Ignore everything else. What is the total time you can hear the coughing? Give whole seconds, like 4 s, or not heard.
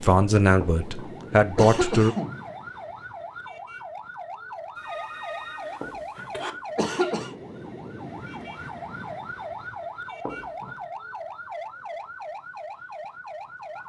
4 s.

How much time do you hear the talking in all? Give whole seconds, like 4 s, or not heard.
2 s.